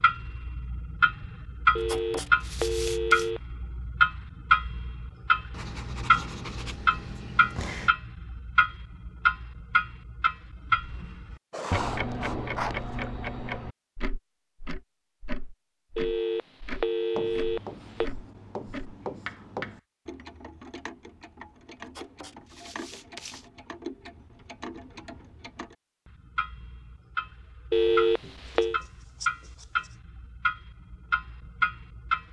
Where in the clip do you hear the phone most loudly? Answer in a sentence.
The loudest moment of the phone is at 28 seconds.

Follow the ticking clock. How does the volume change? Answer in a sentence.
The loudness of the ticking clock goes down, then up.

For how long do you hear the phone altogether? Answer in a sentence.
You can hear the phone for 5 seconds altogether.